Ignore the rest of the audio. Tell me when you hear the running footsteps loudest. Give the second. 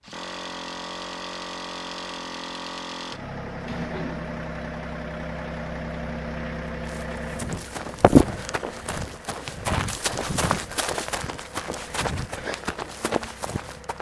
8 s.